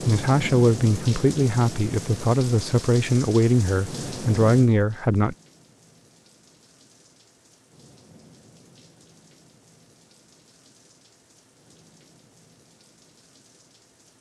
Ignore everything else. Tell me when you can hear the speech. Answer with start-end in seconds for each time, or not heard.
0.0-5.3.